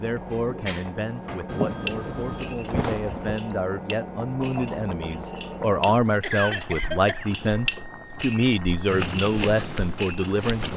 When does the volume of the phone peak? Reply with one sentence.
The volume of the phone peaks at 3 seconds.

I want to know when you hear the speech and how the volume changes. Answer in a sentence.
The speech can be heard from 0.0 to 10.7 s, getting louder.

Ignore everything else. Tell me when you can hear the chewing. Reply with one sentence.
The chewing can be heard from 8.8 to 10.7 s.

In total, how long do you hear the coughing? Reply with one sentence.
You can hear the coughing for 2 seconds altogether.